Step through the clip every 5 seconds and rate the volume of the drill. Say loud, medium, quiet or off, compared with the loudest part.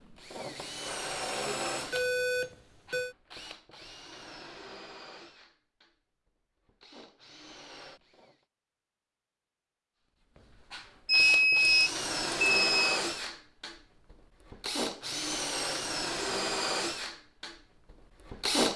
medium, quiet, loud, loud.